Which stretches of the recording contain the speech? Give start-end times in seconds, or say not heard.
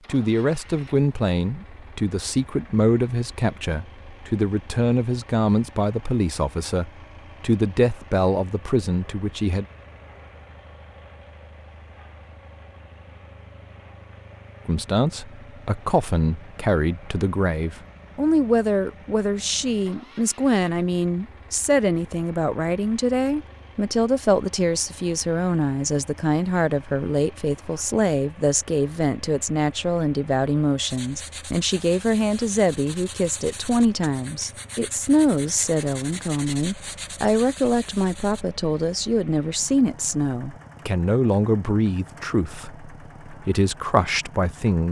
0.1-9.7, 14.7-44.8.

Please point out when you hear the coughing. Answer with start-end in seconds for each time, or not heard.
not heard.